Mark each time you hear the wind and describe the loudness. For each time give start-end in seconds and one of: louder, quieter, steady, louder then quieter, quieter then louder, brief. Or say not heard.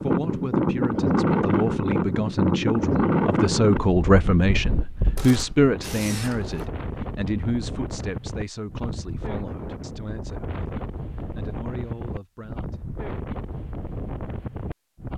0.0-15.1 quieter.